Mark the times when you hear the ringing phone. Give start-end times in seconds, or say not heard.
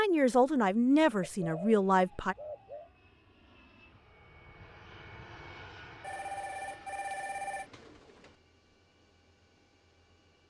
6.0-7.7.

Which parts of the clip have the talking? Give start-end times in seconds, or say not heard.
0.0-2.4.